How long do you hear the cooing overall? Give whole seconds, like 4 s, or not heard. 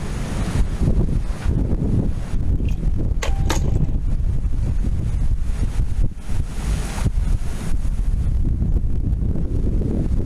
not heard.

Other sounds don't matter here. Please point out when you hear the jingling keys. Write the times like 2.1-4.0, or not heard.
2.5-4.0.